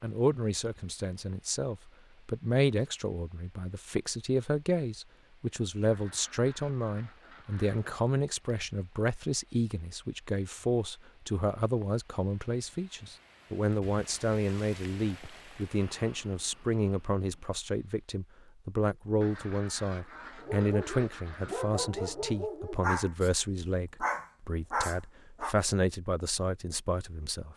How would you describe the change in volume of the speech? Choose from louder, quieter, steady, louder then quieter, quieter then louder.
steady.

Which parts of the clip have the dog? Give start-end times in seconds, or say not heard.
20.4-25.6.